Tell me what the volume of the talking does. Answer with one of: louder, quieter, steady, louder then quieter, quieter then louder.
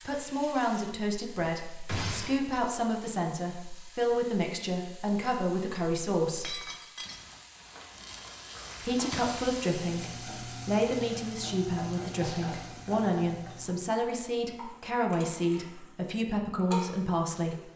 steady.